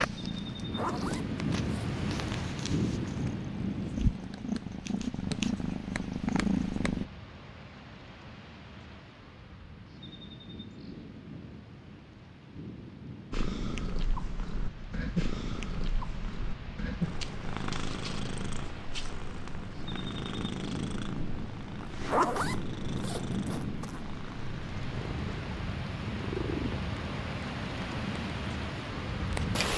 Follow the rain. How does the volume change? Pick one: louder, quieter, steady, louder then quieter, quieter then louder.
quieter then louder.